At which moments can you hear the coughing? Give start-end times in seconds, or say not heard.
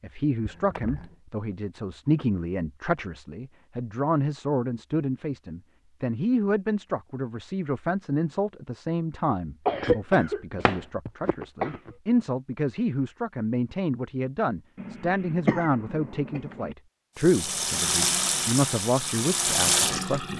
0.5-1.1, 9.7-11.9, 14.8-16.8.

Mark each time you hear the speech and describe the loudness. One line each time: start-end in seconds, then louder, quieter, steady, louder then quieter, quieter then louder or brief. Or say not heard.
0.0-20.3 steady.